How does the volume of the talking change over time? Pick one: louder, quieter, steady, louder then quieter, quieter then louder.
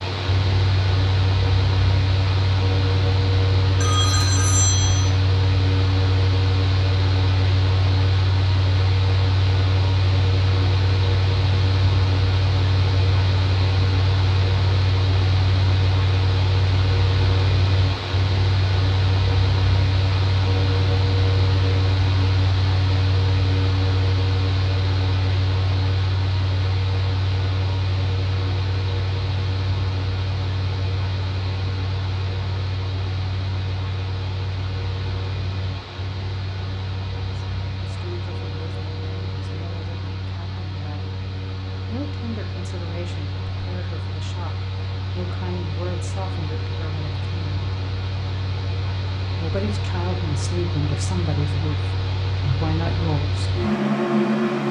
louder.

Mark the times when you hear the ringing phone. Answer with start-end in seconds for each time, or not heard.
3.8-5.1.